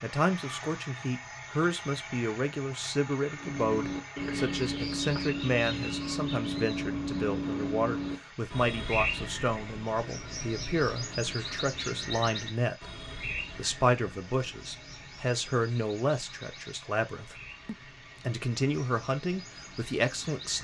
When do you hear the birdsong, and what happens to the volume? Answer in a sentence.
The birdsong can be heard from 3.4 to 20.5 s, getting quieter.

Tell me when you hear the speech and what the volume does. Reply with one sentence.
The speech can be heard from 0.0 to 20.5 s, at a steady volume.